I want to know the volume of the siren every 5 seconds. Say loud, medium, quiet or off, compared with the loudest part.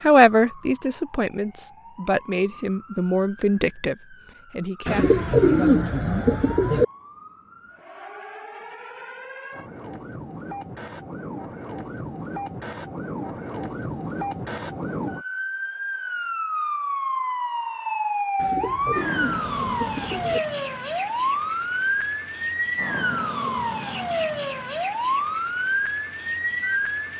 quiet, quiet, medium, loud, loud, loud.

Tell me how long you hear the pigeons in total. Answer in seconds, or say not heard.
4 s.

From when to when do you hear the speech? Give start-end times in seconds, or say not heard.
0.0-5.2.